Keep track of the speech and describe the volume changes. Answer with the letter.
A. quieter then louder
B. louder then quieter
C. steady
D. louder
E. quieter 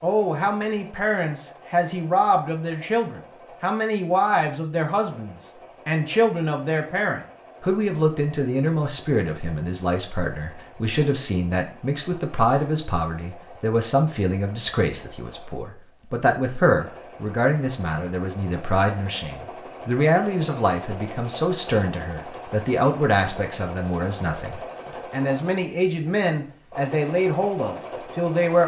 C.